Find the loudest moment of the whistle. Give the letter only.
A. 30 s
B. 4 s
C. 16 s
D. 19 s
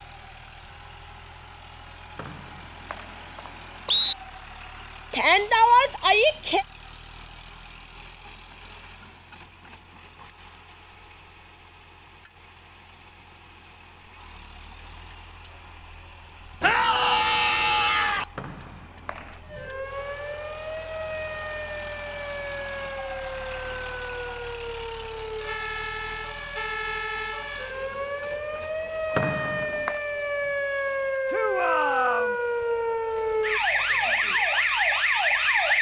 B.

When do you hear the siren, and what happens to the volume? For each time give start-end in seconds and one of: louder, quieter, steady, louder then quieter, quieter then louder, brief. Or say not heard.
19.4-35.7 louder.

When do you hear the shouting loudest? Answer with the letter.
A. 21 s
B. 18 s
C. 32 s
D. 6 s
D.